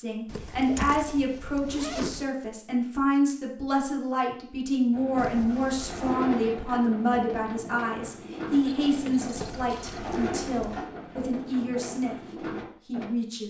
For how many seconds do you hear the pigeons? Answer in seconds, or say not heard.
8 s.